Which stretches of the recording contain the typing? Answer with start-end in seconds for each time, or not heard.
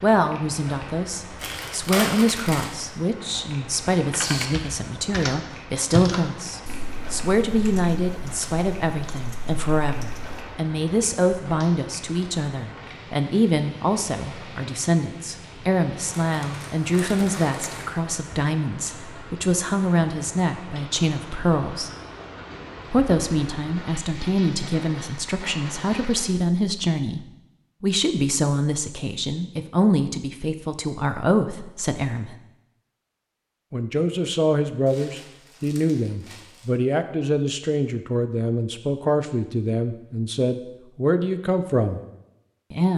4.1-10.4.